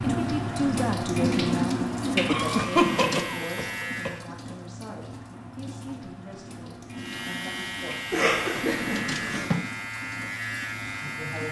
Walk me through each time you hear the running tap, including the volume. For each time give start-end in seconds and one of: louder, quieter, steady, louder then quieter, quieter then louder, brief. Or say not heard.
0.0-11.4 quieter.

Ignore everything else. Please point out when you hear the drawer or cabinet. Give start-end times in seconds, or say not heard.
2.5-3.3, 8.7-9.7.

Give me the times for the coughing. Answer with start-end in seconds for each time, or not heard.
2.2-4.2, 8.1-9.5.